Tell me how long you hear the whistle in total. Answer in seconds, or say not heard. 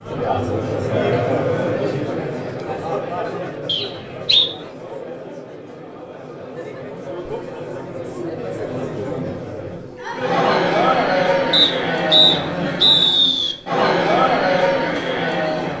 3 s.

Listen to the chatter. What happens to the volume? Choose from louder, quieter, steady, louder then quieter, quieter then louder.
quieter then louder.